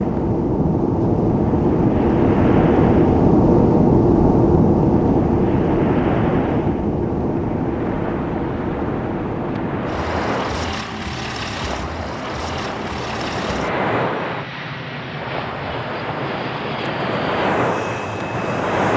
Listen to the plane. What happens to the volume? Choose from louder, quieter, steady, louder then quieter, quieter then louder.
quieter.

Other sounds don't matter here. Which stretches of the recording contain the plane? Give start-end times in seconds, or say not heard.
0.0-18.9.